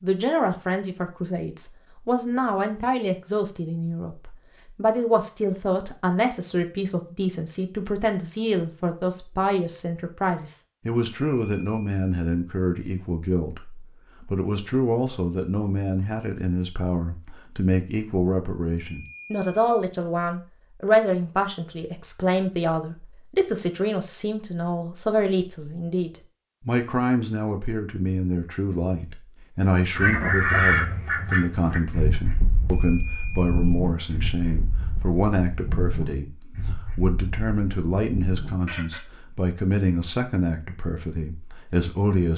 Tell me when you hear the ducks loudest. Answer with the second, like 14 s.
31 s.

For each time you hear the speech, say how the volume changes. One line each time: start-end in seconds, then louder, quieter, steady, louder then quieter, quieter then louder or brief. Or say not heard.
0.0-42.3 steady.